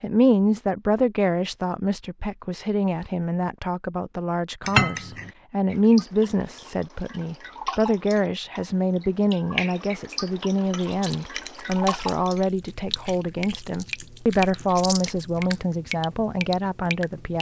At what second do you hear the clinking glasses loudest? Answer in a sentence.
The volume of the clinking glasses peaks at 5 seconds.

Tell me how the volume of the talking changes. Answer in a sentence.
The loudness of the talking stays about the same.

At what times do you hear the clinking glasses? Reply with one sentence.
The clinking glasses can be heard from 4.6 to 5.3 s and from 10.6 to 12.4 s.